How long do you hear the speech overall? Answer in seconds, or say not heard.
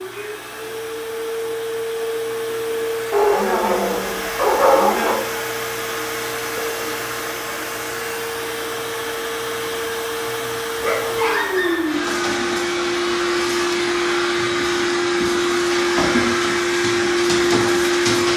not heard.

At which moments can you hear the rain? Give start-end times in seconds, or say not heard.
not heard.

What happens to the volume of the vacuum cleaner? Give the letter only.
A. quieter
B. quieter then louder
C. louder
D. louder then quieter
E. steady
C.